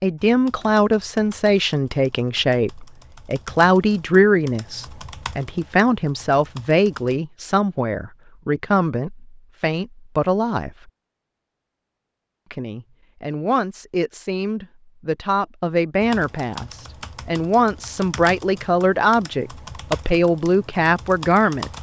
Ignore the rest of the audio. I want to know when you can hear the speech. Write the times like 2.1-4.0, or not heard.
0.0-10.9, 12.5-21.7.